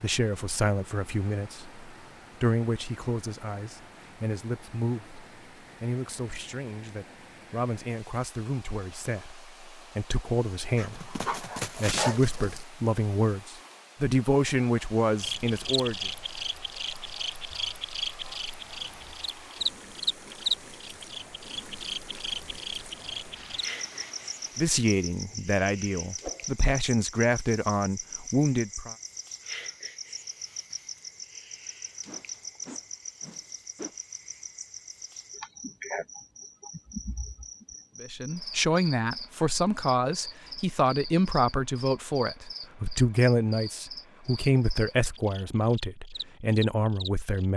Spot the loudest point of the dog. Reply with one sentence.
The volume of the dog peaks at 12 seconds.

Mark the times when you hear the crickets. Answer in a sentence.
You can hear the crickets from 15.2 to 47.5 s.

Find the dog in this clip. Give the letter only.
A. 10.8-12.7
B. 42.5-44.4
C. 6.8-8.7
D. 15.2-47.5
A.